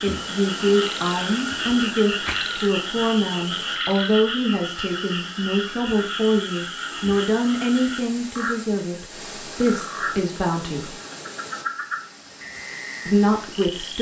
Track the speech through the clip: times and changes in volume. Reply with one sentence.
You can hear the speech from 0.0 to 10.9 s, at a steady volume; and briefly from 13.1 to 13.9 s.